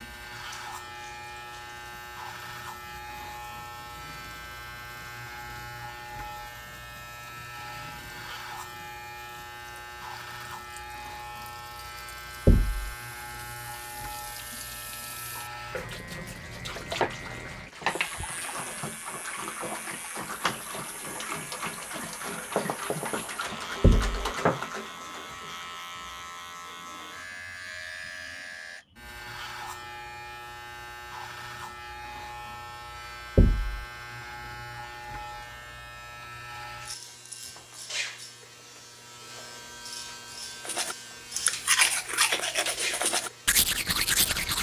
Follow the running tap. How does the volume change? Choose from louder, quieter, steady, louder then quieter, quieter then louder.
louder.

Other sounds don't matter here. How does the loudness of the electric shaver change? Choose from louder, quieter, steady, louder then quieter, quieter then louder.
steady.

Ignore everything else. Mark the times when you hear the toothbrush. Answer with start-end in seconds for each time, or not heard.
40.6-44.5.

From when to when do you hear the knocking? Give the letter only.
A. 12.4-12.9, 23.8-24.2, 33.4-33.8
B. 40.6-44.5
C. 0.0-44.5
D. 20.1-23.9
A.